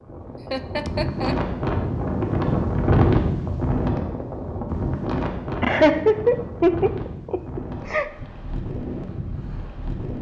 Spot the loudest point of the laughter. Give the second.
6 s.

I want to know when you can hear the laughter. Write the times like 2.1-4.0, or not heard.
0.5-1.4, 5.6-8.1.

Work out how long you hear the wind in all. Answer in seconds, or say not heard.
10 s.